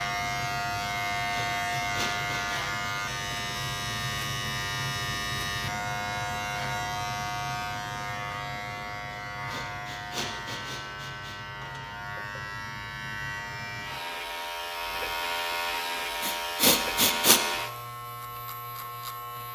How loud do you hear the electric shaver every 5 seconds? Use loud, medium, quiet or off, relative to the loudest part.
loud, loud, medium, loud.